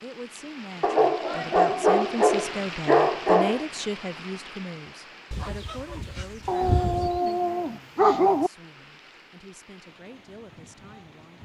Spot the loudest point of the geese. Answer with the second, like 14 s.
7 s.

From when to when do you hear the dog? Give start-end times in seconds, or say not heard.
0.8-3.6, 6.5-8.5.